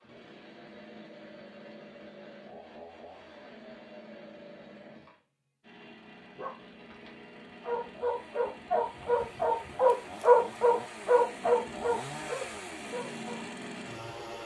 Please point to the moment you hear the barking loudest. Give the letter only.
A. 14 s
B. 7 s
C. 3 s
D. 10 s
D.